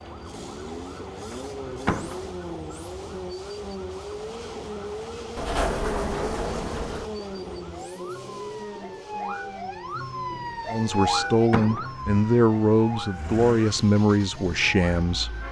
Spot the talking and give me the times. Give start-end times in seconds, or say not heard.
10.7-15.3.